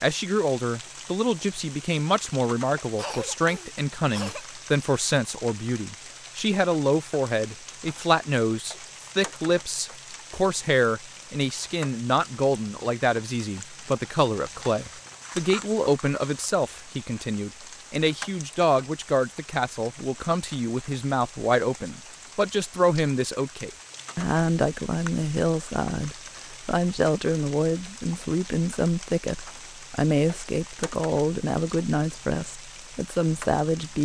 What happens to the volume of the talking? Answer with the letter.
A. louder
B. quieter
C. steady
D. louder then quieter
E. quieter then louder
C.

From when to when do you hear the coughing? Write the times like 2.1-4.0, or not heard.
3.0-4.5.